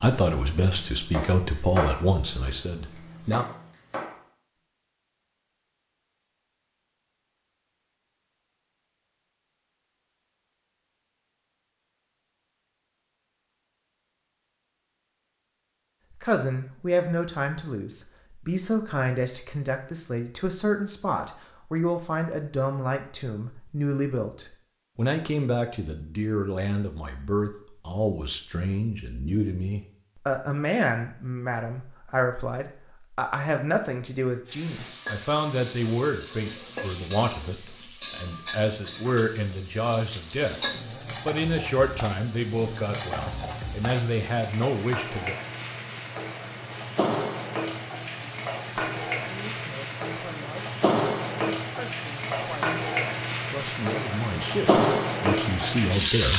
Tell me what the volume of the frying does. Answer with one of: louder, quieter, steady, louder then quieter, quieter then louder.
louder.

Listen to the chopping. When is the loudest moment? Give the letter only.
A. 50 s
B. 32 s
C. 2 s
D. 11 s
C.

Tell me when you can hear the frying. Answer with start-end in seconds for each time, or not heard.
34.5-56.3.